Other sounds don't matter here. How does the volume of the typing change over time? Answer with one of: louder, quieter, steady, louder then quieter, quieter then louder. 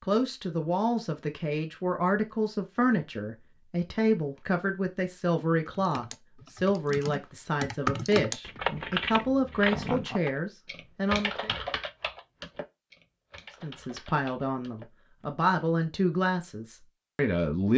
louder then quieter.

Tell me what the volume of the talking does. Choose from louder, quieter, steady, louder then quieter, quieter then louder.
steady.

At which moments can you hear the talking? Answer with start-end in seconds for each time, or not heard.
0.0-11.5, 13.6-17.7.